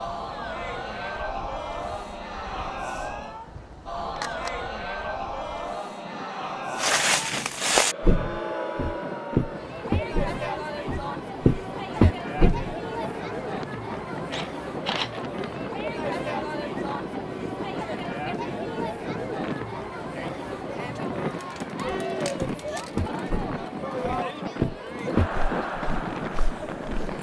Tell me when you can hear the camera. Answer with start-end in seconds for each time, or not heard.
3.5-4.5, 14.3-15.2, 22.2-22.9.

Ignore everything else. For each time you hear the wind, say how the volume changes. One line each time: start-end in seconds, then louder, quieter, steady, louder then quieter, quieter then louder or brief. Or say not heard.
0.0-27.1 louder.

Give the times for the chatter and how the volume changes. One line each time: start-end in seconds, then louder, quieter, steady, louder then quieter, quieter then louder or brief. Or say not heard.
0.0-27.1 steady.